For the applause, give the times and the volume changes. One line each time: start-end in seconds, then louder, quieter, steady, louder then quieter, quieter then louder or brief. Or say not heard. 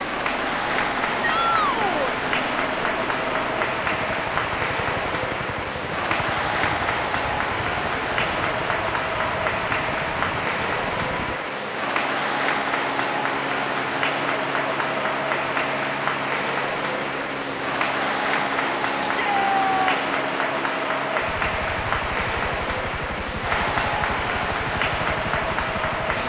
0.0-26.2 steady.